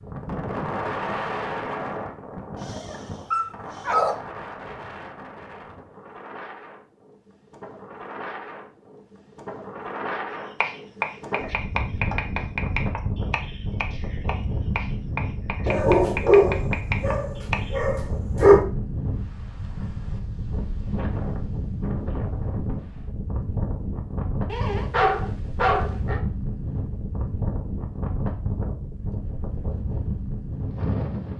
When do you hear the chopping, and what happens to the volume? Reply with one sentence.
The chopping can be heard from 10.6 to 17.8 s, getting quieter then louder.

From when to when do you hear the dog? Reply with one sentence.
You can hear the dog from 2.5 to 4.2 s, from 15.7 to 18.6 s and from 24.4 to 26.2 s.